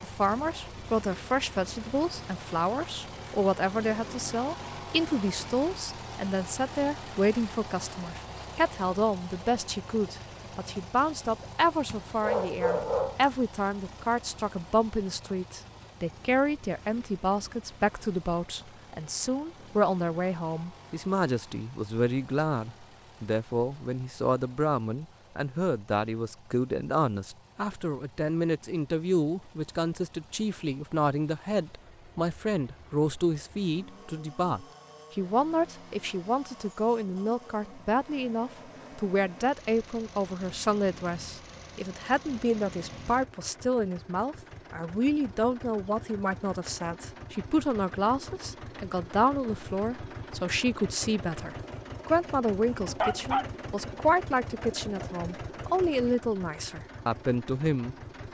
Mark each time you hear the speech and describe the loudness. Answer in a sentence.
You can hear the speech from 0.0 to 58.3 s, at a steady volume.